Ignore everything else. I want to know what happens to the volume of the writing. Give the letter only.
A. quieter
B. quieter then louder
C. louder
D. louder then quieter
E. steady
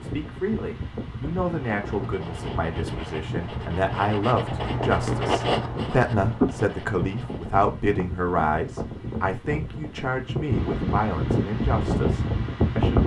C.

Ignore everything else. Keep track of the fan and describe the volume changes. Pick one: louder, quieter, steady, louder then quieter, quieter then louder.
louder.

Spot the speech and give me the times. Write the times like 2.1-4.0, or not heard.
0.0-13.0.